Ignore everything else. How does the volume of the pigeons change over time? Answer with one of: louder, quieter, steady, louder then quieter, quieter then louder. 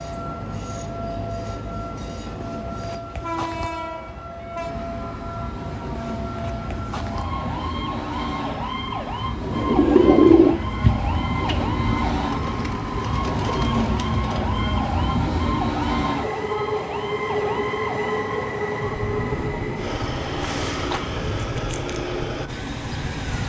quieter.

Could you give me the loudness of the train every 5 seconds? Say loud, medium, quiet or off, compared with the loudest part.
medium, medium, loud, loud, loud.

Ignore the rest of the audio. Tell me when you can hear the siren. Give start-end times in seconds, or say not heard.
0.0-23.4.